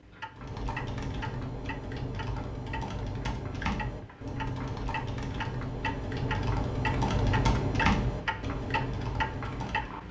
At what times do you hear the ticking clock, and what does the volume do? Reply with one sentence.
The ticking clock can be heard from 0.0 to 10.0 s, getting louder.